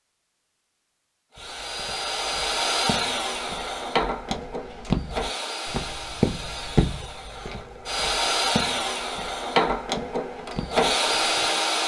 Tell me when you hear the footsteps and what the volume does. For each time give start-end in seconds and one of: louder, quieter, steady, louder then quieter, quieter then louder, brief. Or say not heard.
1.4-11.5 louder then quieter.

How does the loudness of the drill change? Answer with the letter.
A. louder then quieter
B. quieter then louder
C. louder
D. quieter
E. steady
B.